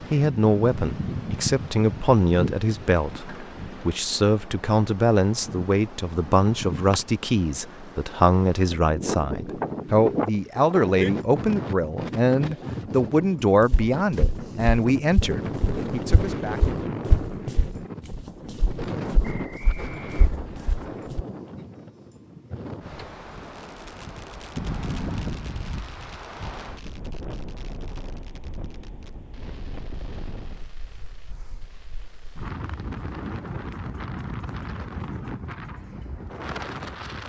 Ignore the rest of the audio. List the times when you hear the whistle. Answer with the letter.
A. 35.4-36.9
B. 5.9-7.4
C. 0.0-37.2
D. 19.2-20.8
D.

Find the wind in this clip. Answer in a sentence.
The wind can be heard from 0.0 to 37.2 s.